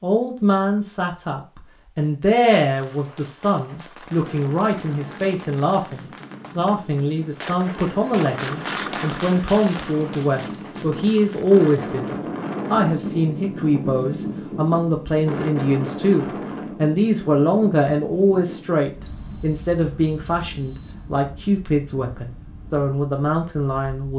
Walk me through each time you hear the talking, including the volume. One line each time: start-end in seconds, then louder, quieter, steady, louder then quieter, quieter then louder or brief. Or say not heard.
0.0-24.1 steady.